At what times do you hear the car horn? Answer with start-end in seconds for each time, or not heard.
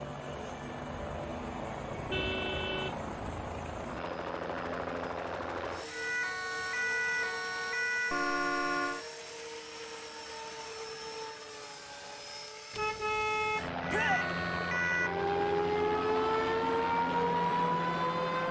1.9-3.5, 8.1-9.1, 12.7-13.8.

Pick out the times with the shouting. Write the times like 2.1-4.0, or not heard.
13.8-14.2.